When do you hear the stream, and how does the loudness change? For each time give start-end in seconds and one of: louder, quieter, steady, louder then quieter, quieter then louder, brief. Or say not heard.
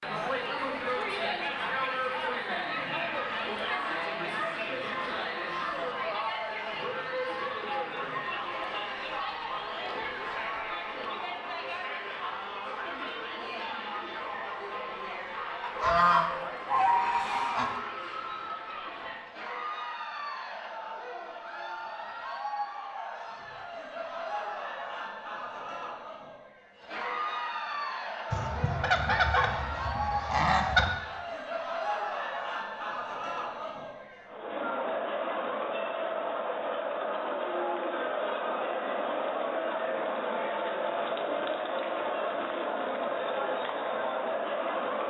not heard.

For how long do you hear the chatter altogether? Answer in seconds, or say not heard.
45 s.